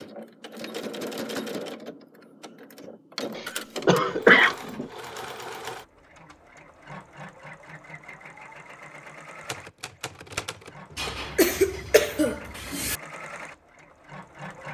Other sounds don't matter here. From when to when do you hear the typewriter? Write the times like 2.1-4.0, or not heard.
9.4-11.3.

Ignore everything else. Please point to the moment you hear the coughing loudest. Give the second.
4 s.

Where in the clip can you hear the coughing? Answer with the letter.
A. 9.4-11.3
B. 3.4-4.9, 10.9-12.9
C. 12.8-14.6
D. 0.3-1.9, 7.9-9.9
B.